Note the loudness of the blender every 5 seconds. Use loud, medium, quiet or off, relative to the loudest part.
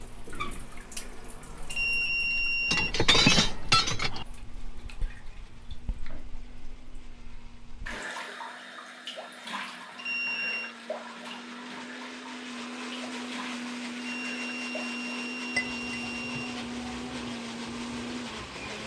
quiet, quiet, loud, loud.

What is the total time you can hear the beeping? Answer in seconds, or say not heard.
5 s.